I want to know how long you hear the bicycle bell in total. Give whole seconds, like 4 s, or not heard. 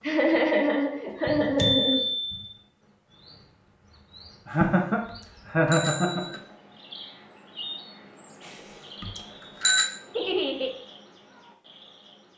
4 s.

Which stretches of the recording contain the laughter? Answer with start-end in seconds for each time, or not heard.
0.0-2.0, 4.5-6.2, 10.2-10.7.